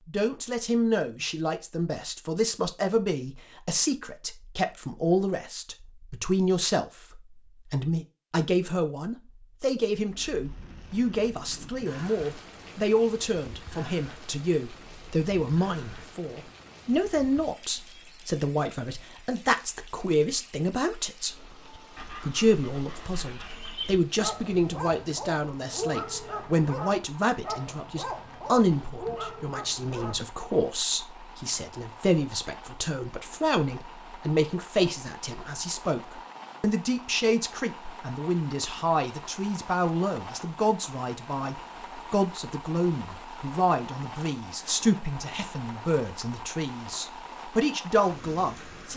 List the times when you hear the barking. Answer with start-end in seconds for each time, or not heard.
21.8-30.2.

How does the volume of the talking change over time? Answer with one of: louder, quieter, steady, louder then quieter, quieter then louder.
steady.